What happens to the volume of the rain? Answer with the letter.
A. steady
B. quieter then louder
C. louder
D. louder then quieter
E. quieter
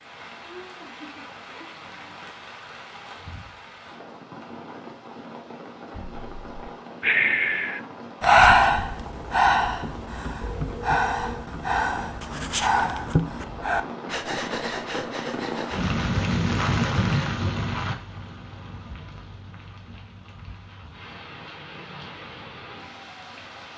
D.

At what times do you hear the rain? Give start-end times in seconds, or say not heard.
0.0-23.7.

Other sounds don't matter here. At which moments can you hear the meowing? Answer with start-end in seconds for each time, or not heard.
not heard.